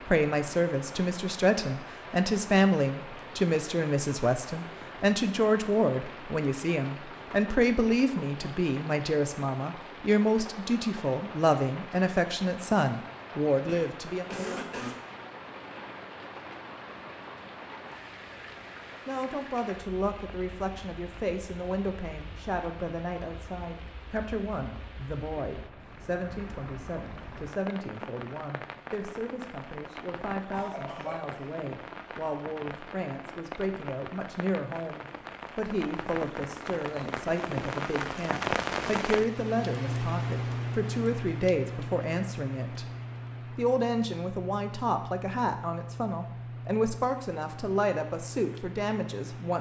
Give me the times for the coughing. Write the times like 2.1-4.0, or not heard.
13.7-14.9, 30.5-31.4.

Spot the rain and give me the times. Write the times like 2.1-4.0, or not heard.
0.0-49.5.